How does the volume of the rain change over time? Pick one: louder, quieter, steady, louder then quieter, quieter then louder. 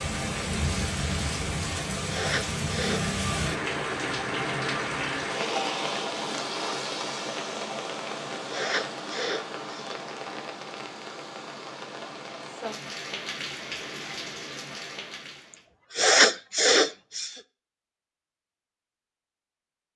quieter.